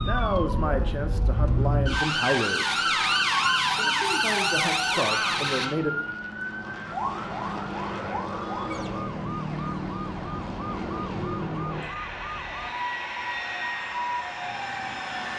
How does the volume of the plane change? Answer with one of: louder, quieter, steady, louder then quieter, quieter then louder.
louder.